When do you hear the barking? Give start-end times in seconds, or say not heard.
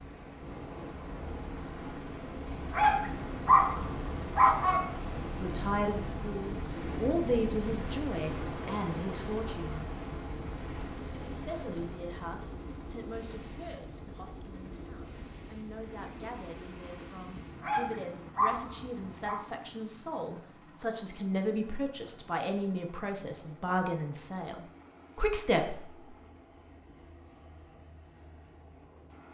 2.5-5.0, 17.4-19.4.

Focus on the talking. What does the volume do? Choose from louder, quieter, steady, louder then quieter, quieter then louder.
quieter then louder.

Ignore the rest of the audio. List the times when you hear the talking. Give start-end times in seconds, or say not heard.
5.4-9.9, 11.3-26.1.